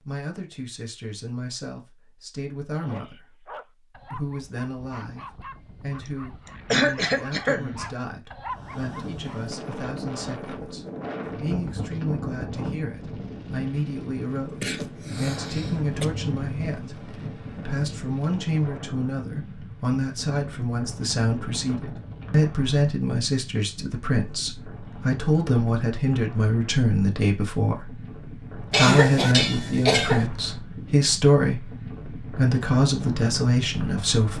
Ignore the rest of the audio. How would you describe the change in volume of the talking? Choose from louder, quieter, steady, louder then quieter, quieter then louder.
louder.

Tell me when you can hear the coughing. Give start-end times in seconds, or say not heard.
6.7-7.8, 14.2-16.1, 28.7-30.2.